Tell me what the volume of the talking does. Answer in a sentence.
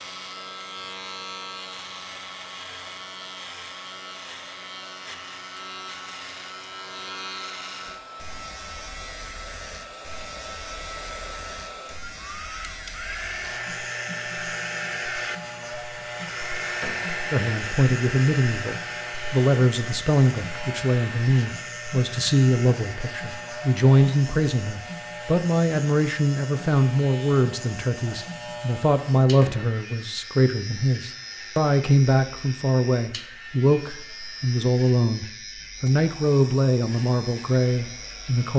The volume of the talking stays about the same.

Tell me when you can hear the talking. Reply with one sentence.
You can hear the talking from 17.3 to 38.5 s.